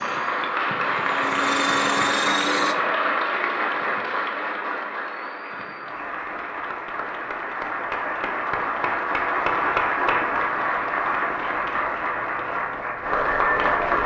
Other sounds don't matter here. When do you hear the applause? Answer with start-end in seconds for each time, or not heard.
0.0-14.0.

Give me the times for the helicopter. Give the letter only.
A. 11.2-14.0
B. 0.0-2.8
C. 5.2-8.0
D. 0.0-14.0
B.